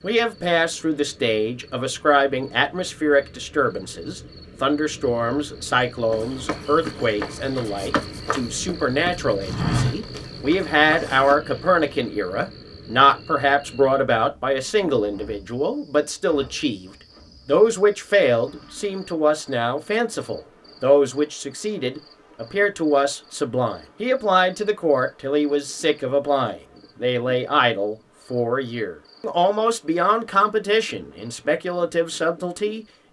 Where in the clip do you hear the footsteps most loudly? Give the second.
10 s.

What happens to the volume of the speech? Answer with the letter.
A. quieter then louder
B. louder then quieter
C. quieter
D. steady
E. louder
D.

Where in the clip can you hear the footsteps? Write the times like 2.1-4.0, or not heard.
6.0-11.3.